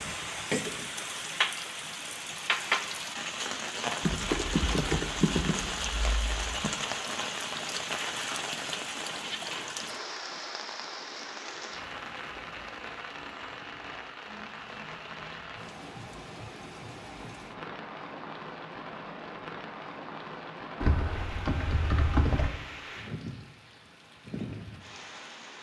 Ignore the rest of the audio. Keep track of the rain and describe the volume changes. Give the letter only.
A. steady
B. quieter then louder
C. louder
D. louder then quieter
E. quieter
E.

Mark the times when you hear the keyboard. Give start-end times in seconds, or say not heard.
4.0-6.7, 20.8-22.5.